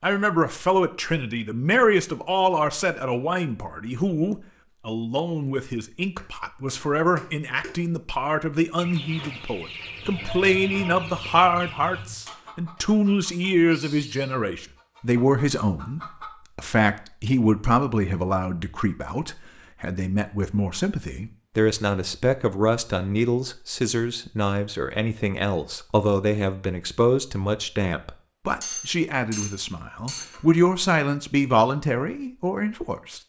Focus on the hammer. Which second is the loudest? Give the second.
29 s.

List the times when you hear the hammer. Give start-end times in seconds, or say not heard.
6.2-7.8, 28.6-30.4.